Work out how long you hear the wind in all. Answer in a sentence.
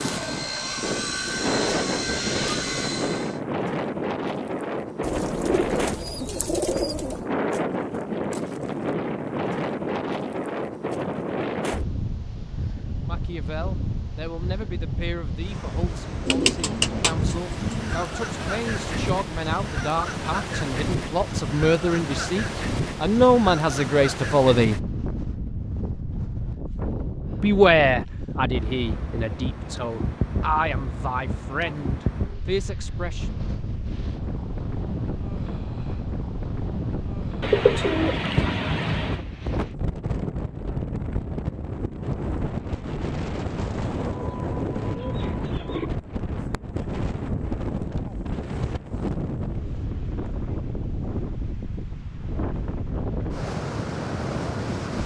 The wind can be heard for 55 seconds in total.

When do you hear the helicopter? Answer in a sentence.
You can hear the helicopter from 0.0 to 3.4 s.